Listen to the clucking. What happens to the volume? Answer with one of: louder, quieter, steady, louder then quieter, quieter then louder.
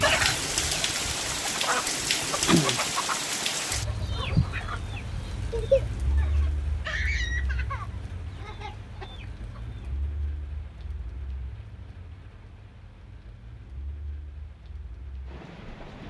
louder then quieter.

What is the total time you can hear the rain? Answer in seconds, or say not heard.
16 s.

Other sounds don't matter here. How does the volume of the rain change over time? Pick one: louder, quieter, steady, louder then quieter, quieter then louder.
quieter.